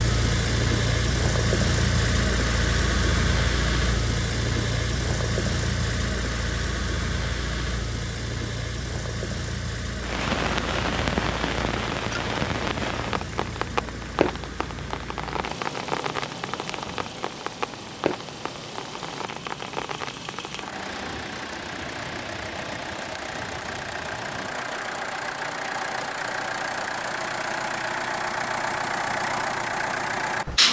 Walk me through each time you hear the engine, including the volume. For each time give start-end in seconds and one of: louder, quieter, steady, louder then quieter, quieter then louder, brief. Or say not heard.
0.0-30.6 quieter then louder.